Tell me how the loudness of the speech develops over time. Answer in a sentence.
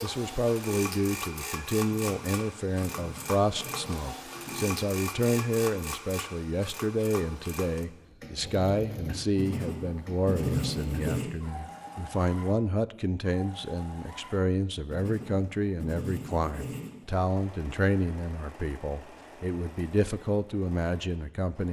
The volume of the speech stays about the same.